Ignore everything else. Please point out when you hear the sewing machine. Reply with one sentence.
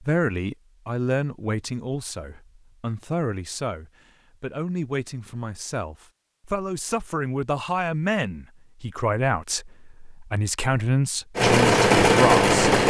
You can hear the sewing machine from 11.3 to 12.8 s.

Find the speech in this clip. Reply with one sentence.
The speech can be heard from 0.0 to 12.7 s.